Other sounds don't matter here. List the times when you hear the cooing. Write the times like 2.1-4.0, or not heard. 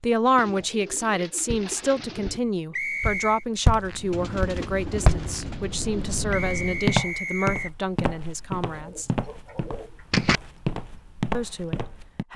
0.3-2.4, 4.1-6.2, 8.7-10.4.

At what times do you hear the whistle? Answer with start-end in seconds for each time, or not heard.
2.7-3.5, 6.3-7.7.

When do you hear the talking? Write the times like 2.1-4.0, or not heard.
0.0-9.1, 11.3-12.3.